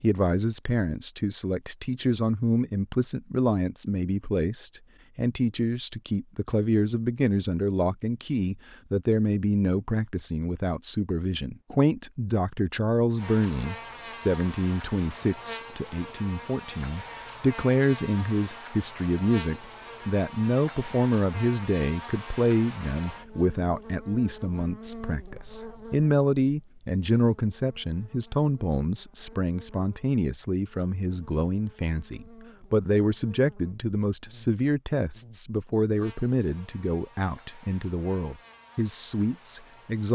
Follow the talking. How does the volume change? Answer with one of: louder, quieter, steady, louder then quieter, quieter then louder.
steady.